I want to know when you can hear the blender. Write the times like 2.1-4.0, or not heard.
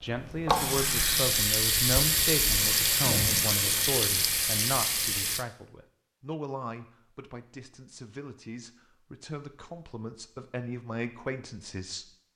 not heard.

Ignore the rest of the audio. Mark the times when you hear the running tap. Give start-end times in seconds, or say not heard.
0.0-5.5.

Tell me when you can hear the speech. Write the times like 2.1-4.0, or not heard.
0.0-12.1.